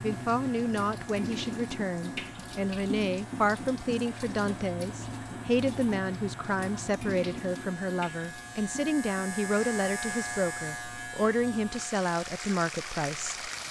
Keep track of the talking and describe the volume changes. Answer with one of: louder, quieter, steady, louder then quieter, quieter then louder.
steady.